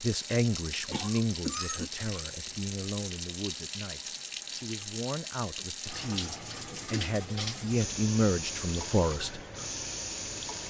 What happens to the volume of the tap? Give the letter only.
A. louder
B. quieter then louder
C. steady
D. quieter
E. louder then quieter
C.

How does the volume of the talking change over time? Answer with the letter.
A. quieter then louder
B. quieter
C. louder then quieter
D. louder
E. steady
A.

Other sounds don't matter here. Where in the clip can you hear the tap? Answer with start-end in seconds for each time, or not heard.
0.0-10.6.